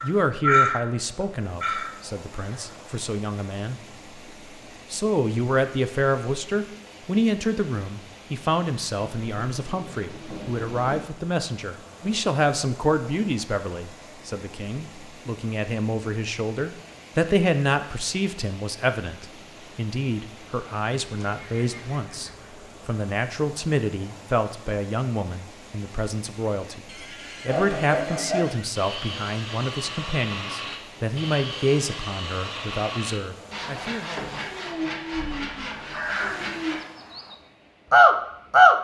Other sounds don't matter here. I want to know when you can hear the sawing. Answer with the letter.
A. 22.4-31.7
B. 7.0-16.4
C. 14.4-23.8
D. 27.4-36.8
D.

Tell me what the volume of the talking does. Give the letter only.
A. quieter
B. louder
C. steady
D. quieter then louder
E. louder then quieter
C.